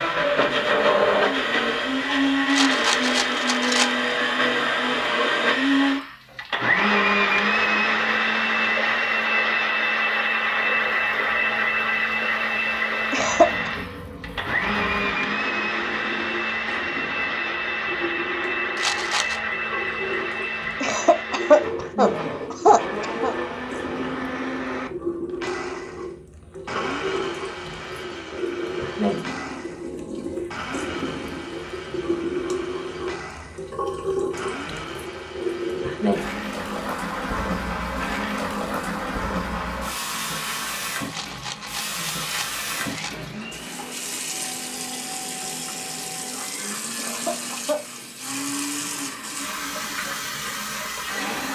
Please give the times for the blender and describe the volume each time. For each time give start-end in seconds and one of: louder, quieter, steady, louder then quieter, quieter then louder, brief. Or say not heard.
0.0-51.5 quieter.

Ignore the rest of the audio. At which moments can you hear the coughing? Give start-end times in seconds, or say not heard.
13.1-13.7, 20.8-23.4, 47.0-47.9.